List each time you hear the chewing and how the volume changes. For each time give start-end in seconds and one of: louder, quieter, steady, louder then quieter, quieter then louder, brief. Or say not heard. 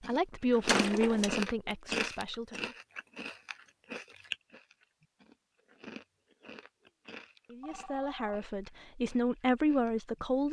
0.0-10.4 quieter.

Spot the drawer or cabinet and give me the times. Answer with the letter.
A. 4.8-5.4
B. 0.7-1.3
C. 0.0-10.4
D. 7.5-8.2
B.